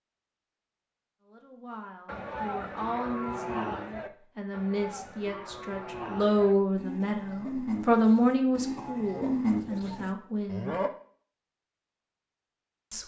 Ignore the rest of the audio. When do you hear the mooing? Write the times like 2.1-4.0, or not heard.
2.0-10.9.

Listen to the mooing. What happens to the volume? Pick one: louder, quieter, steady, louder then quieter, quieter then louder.
quieter then louder.